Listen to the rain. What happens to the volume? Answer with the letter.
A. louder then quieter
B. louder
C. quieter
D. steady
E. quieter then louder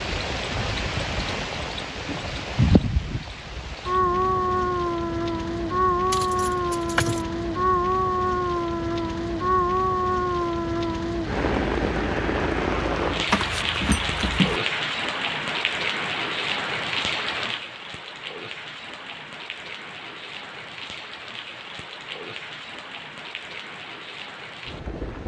C.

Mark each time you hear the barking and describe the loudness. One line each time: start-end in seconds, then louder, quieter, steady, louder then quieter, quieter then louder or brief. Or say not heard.
not heard.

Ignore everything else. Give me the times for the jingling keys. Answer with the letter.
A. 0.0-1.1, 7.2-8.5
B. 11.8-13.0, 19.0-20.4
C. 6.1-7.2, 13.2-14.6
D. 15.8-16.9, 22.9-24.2
C.